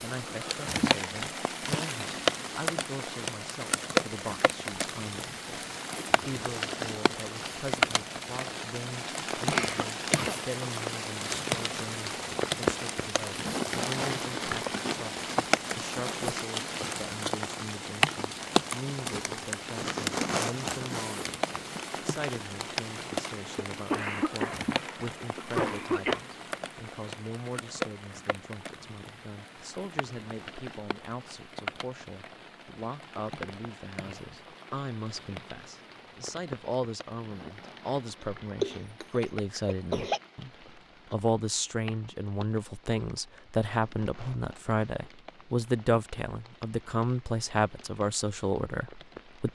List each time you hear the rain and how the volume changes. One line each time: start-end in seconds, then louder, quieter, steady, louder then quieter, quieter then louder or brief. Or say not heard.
0.0-49.4 quieter.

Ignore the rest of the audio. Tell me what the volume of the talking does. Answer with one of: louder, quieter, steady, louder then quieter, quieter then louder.
louder.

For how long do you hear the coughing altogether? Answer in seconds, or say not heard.
5 s.